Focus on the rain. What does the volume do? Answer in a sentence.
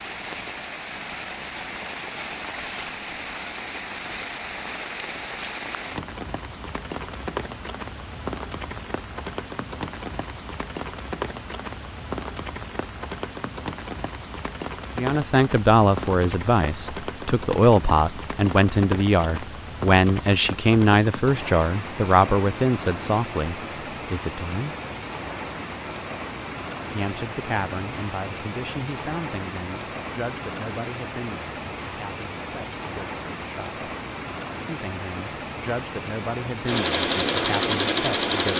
The volume of the rain stays about the same.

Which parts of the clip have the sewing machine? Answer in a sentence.
The sewing machine can be heard from 36.6 to 38.5 s.